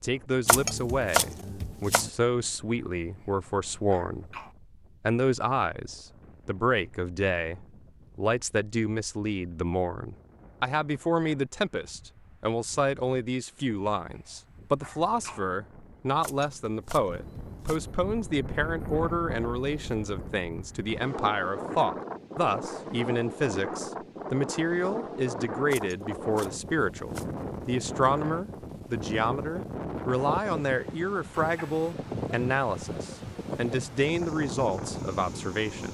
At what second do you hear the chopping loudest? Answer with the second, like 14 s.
1 s.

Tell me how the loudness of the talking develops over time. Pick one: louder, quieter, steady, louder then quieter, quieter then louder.
steady.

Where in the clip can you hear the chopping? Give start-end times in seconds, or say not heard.
0.5-2.1, 16.2-17.9, 25.7-27.4.